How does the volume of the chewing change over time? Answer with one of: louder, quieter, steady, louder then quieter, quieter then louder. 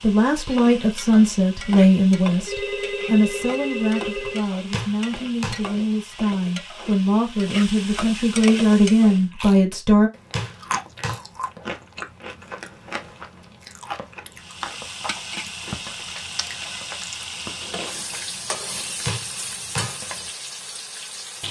quieter.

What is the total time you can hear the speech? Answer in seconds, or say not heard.
10 s.